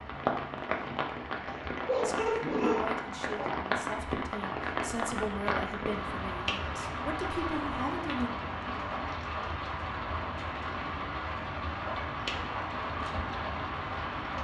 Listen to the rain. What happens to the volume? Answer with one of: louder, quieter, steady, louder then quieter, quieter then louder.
steady.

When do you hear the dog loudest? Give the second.
2 s.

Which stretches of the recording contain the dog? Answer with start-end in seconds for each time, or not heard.
1.4-3.5.